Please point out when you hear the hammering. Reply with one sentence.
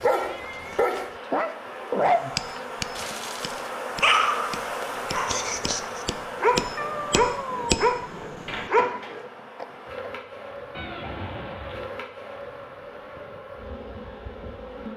The hammering can be heard from 2.0 to 9.1 s.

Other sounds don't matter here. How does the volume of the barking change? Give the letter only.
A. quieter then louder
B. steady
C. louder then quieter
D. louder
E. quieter
A.